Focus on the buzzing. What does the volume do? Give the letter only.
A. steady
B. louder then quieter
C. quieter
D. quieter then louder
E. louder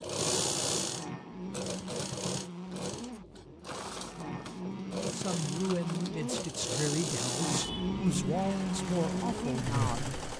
E.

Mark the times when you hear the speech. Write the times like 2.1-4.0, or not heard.
5.0-10.2.